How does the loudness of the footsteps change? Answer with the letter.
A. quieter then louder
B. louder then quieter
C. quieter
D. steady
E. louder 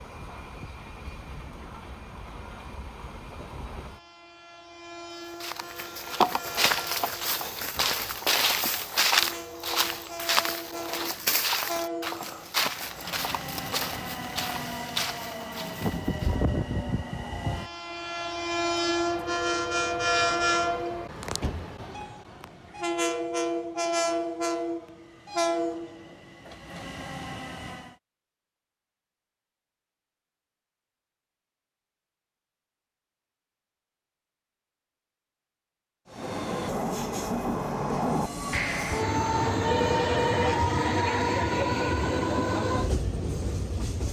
C.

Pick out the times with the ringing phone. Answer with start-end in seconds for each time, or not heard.
38.5-40.5.